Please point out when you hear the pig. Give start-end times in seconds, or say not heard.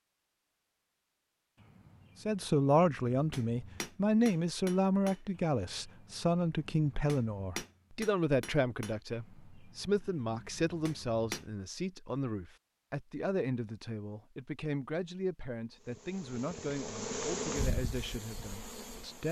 not heard.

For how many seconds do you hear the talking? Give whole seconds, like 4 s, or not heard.
17 s.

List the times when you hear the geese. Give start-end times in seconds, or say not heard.
not heard.